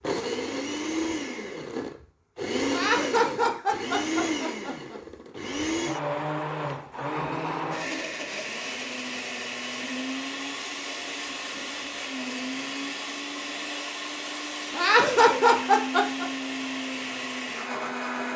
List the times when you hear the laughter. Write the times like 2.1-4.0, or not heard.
2.7-5.0, 14.8-16.2.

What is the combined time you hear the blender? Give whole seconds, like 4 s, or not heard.
18 s.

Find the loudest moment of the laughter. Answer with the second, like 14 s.
15 s.